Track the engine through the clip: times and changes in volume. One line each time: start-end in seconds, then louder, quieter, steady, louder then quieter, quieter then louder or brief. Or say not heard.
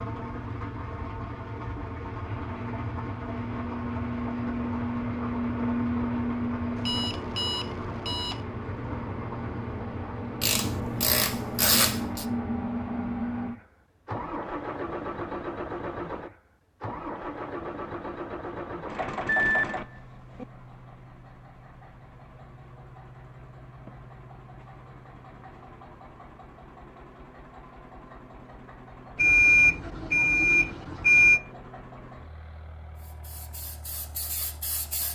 0.0-35.1 quieter.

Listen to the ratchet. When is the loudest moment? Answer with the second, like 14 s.
12 s.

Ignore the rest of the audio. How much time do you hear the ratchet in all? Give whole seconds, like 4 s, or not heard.
2 s.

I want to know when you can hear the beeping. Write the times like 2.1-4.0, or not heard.
6.8-8.4, 19.2-20.4, 29.1-31.4.